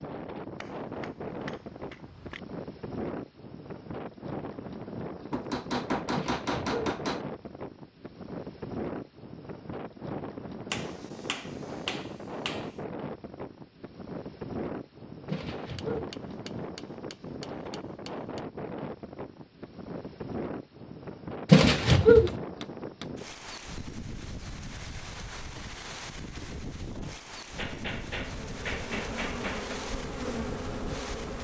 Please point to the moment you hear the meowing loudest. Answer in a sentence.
The volume of the meowing peaks at 22 seconds.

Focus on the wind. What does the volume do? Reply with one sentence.
The loudness of the wind stays about the same.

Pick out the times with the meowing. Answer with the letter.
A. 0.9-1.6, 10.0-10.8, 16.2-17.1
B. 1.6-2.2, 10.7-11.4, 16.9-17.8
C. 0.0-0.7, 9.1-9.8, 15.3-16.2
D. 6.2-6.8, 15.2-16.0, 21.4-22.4
D.